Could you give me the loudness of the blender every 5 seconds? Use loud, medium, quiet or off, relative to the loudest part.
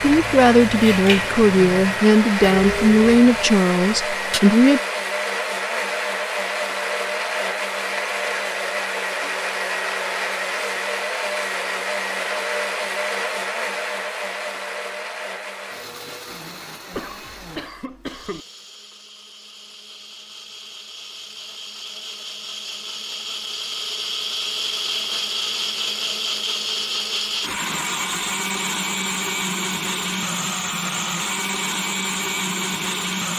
loud, loud, loud, quiet, medium, loud, loud.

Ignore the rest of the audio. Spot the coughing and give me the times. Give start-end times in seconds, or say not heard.
16.9-18.4.